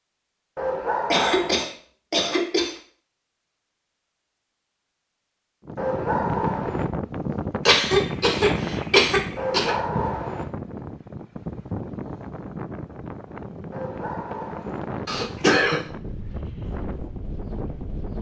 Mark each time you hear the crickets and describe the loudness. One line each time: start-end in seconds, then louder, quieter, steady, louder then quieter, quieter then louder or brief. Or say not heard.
not heard.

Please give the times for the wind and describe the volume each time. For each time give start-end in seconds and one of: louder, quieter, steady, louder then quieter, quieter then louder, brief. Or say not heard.
5.7-18.1 quieter.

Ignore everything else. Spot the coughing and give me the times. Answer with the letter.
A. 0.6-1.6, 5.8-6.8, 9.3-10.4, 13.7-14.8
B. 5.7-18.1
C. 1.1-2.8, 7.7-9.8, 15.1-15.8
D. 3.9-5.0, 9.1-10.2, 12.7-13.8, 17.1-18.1
C.